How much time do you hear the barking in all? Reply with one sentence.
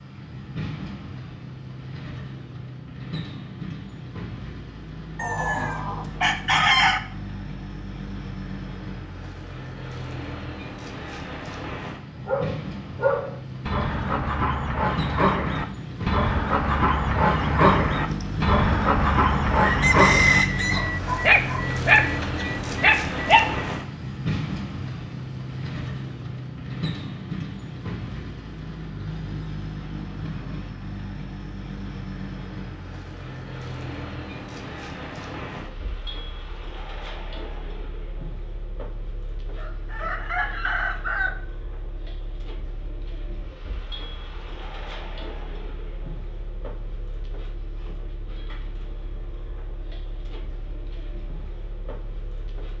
You can hear the barking for 11 seconds altogether.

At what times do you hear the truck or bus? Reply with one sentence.
The truck or bus can be heard from 0.0 to 52.7 s.